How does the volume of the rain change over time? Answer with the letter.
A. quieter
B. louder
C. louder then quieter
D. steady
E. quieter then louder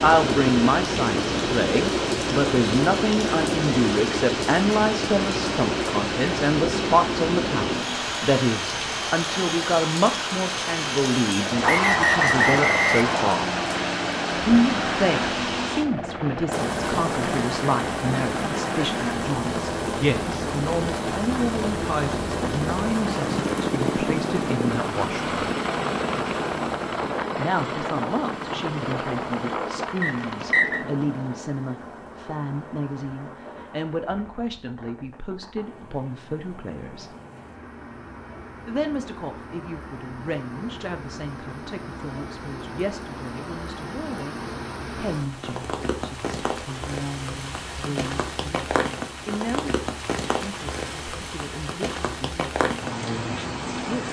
E.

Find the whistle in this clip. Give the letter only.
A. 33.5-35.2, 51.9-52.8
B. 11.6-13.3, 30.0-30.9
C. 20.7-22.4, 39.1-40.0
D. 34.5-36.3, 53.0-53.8
B.